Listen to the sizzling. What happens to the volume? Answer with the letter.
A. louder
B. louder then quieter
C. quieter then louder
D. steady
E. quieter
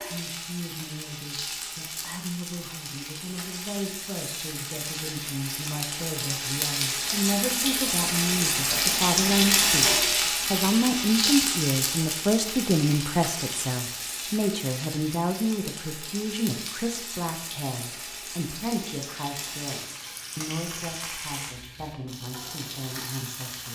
B.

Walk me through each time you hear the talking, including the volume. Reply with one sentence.
The talking can be heard from 0.1 to 23.6 s, getting louder then quieter.